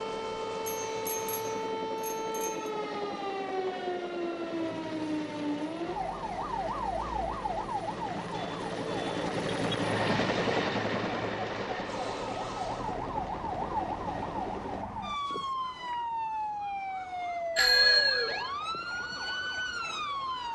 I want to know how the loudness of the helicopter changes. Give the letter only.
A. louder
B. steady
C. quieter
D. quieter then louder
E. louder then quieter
E.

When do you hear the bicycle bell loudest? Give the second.
18 s.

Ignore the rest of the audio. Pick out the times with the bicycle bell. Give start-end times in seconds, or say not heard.
0.9-2.7, 17.6-18.5.